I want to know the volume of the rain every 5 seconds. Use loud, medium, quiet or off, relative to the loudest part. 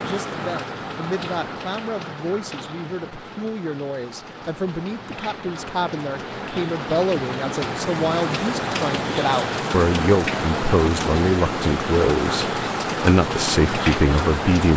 medium, loud, loud.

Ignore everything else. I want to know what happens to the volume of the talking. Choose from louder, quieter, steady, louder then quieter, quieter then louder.
louder.